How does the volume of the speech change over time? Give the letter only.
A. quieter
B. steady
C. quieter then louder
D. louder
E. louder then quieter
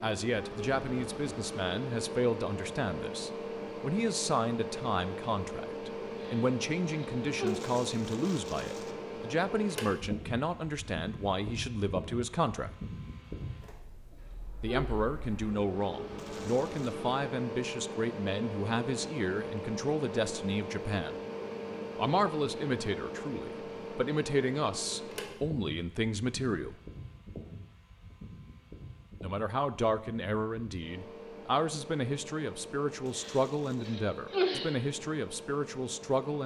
B.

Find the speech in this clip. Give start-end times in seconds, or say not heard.
0.0-12.7, 14.6-21.1, 21.9-26.8, 29.2-36.4.